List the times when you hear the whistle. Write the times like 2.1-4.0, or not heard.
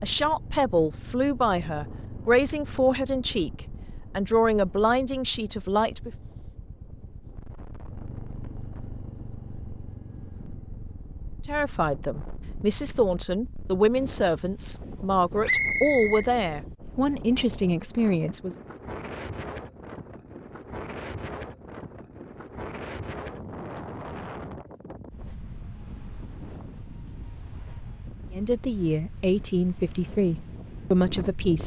15.4-16.2.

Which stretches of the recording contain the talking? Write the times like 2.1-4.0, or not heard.
0.0-6.1, 11.4-18.6, 28.3-31.6.